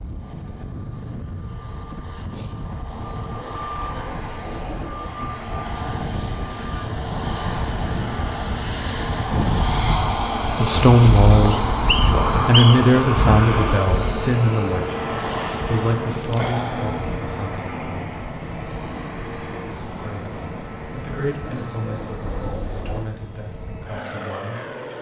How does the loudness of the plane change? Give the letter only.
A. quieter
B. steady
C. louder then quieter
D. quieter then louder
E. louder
C.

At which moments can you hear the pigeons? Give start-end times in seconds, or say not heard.
3.0-5.2, 21.4-23.1.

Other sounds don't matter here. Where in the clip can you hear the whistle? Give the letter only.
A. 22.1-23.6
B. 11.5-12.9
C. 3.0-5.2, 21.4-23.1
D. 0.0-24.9
B.